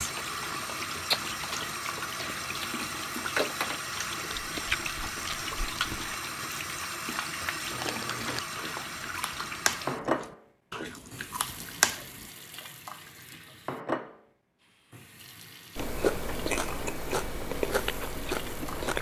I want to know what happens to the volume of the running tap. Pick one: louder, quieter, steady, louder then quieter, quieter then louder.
quieter.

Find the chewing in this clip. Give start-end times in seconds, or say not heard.
0.0-6.2, 7.7-12.3, 15.8-18.9.